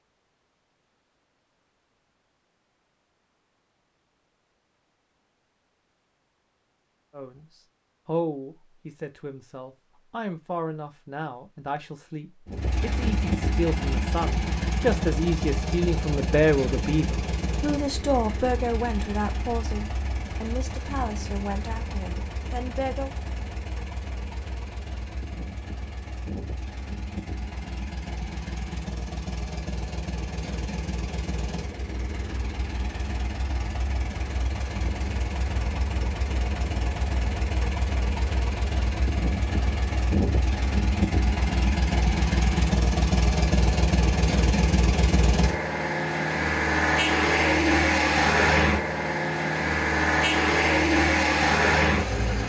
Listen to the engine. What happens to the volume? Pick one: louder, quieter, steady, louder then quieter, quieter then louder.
quieter then louder.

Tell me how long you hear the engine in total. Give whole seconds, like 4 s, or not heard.
40 s.